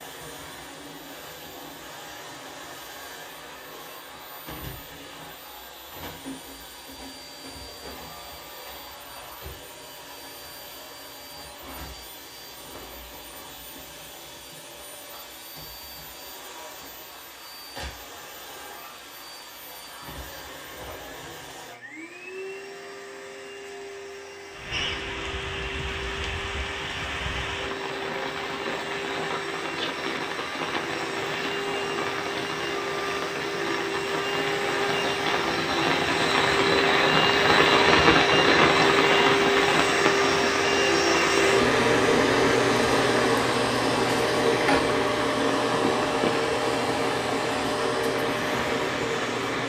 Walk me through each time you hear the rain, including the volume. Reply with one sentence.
You can hear the rain from 24.5 to 49.6 s, getting louder then quieter.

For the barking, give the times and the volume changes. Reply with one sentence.
You can't hear the barking here.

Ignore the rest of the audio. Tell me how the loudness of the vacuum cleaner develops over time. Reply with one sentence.
The volume of the vacuum cleaner goes up.